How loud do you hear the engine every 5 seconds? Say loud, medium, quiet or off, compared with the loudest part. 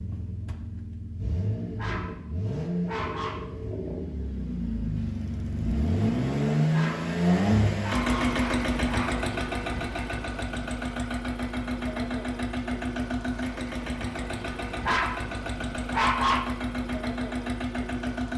medium, loud, medium, medium.